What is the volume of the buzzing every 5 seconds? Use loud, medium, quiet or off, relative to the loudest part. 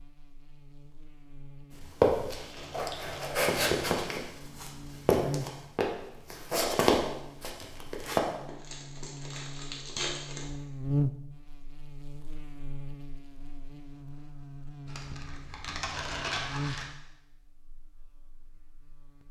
quiet, medium, loud, medium.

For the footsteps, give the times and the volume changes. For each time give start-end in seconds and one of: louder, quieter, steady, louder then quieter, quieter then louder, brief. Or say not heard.
2.0-8.2 louder.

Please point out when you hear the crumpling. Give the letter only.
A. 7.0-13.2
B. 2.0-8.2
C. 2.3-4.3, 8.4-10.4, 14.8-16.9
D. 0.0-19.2
C.